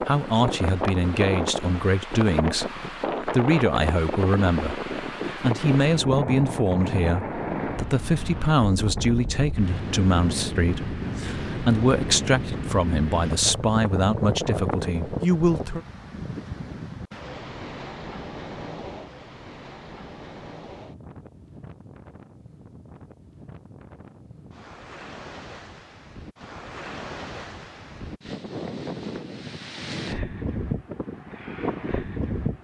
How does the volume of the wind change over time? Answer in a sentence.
The loudness of the wind goes down, then up.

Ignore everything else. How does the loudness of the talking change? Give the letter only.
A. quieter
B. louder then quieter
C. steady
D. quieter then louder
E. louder
C.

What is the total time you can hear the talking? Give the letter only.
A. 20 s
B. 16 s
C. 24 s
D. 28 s
B.